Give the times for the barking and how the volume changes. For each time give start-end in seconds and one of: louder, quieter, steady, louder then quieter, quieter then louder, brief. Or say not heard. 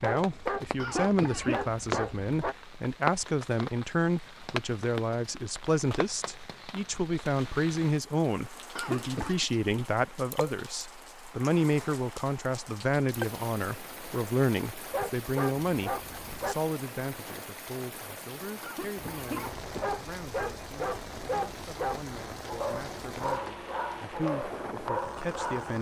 0.0-2.5 brief
14.9-16.6 brief
19.2-25.7 steady.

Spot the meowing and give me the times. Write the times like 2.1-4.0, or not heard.
not heard.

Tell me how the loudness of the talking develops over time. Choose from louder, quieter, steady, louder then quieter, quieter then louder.
quieter.